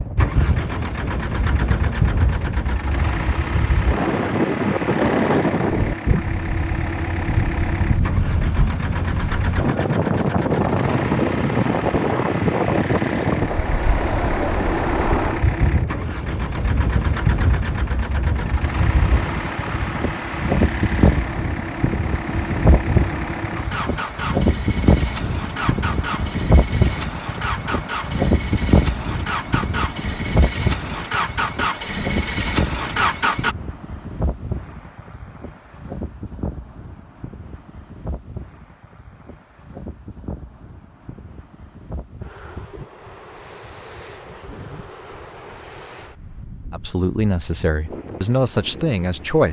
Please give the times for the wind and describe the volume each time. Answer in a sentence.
You can hear the wind from 0.0 to 49.4 s, getting quieter.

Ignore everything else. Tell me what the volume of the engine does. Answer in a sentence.
The volume of the engine stays about the same.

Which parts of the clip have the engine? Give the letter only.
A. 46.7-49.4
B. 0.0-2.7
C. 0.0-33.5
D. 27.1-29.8
C.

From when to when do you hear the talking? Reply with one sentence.
The talking can be heard from 46.7 to 49.4 s.